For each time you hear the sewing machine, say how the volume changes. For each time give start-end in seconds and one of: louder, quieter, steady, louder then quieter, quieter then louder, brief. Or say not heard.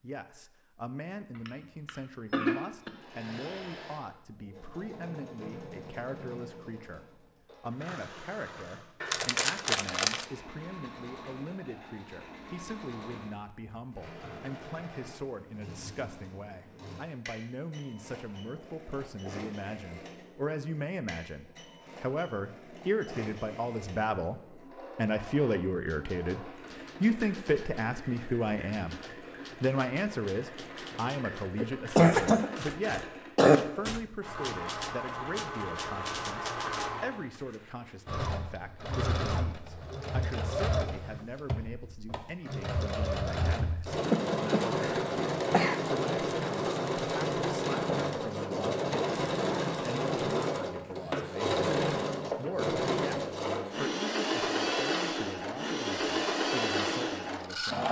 2.3-57.8 louder.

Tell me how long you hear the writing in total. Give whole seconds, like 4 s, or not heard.
not heard.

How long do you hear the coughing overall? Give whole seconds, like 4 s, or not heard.
5 s.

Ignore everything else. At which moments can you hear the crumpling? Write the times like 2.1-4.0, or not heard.
9.0-10.2.